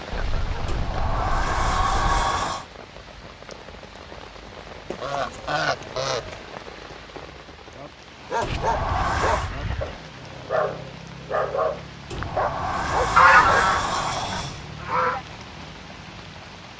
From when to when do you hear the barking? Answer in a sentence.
The barking can be heard from 7.8 to 13.7 s.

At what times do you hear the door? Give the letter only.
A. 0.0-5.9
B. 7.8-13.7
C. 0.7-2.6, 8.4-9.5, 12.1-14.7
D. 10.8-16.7
C.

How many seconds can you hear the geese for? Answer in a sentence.
The geese can be heard for 7 seconds in total.